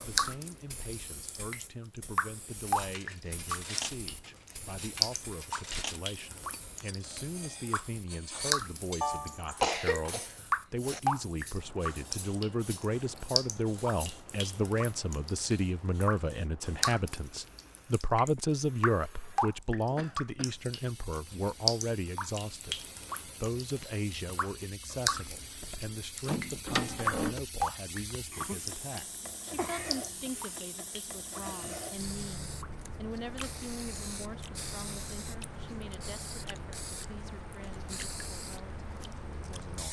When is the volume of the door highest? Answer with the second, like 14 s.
27 s.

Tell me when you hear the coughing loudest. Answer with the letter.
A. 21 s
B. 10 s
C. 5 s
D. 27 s
B.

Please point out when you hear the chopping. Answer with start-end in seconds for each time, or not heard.
not heard.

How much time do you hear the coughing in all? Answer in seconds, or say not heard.
4 s.